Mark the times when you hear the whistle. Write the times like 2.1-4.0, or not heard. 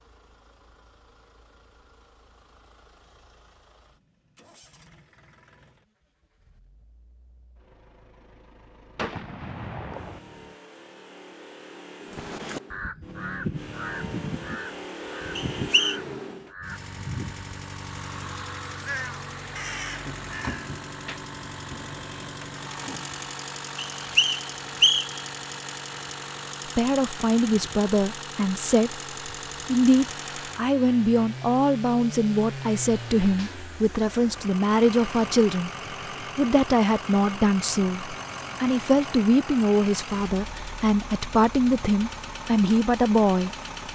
15.3-16.0, 23.9-25.2.